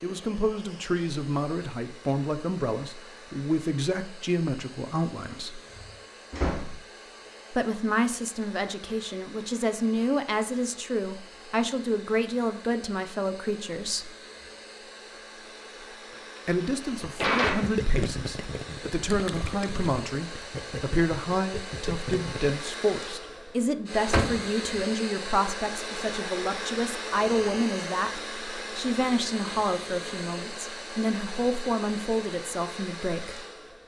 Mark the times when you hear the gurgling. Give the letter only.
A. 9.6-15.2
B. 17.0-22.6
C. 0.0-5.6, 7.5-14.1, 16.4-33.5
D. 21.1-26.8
B.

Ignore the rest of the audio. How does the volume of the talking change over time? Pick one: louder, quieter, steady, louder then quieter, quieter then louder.
steady.